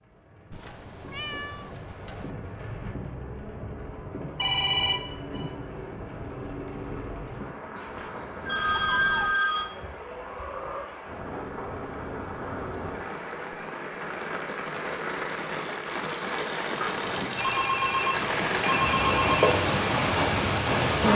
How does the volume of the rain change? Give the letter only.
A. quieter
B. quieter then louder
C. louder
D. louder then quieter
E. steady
C.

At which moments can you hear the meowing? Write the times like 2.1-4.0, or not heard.
0.5-2.4, 8.7-9.3, 16.8-17.5.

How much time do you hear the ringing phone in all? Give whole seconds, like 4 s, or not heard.
5 s.